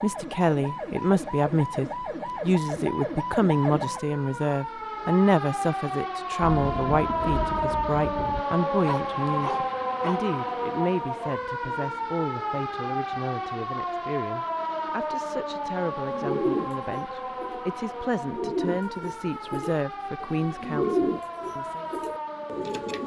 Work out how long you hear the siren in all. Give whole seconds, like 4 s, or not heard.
23 s.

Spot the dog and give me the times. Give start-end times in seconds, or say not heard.
8.8-10.2.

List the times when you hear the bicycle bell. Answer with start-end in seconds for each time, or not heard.
not heard.